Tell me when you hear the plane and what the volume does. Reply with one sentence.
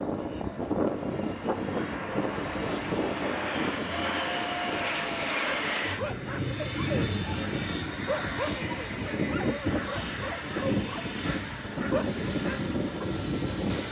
The plane can be heard from 0.0 to 13.8 s, at a steady volume.